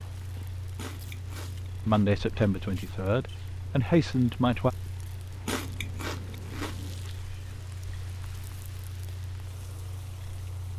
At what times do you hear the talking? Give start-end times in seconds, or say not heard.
1.7-4.7.